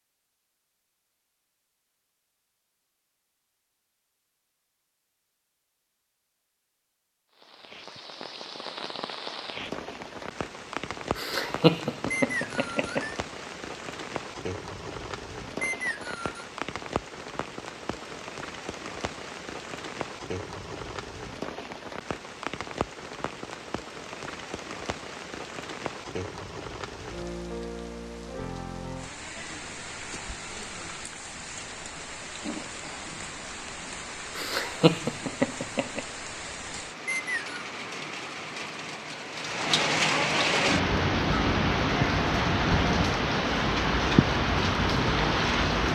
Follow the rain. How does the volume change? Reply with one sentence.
The volume of the rain goes up.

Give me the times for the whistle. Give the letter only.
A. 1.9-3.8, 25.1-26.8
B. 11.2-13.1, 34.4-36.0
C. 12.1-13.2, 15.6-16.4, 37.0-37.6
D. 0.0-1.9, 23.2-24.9
C.